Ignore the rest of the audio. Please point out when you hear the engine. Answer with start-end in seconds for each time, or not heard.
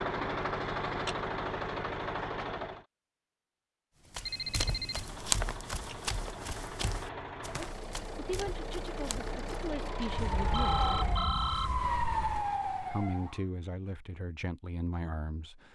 0.0-2.9, 4.8-11.3.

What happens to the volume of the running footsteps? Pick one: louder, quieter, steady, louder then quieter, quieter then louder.
quieter.